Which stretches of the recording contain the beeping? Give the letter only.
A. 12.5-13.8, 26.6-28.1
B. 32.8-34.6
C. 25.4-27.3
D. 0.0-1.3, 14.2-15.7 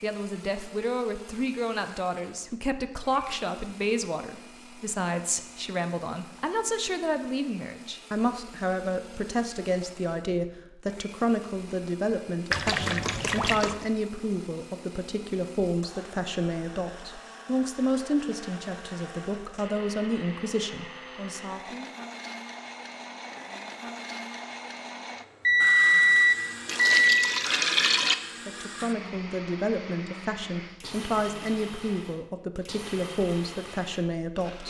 C.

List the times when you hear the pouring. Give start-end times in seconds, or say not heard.
12.5-13.8, 26.6-28.1.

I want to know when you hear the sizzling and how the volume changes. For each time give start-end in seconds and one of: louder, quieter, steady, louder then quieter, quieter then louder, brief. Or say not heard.
not heard.